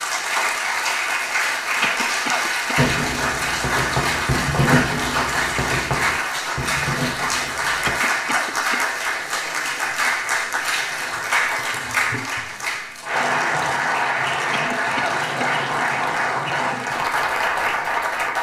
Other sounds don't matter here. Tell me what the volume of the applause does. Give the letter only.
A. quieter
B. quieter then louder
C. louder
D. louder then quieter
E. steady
E.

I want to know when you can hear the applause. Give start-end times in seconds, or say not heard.
0.0-18.3.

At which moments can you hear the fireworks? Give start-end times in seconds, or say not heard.
2.8-8.0.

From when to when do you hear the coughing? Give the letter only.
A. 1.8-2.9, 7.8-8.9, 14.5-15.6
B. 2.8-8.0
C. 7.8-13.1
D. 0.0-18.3
A.